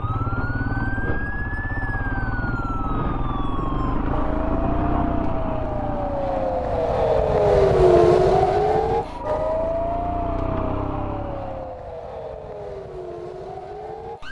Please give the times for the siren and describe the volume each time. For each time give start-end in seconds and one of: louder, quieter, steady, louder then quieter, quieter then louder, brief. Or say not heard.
0.0-14.2 louder then quieter.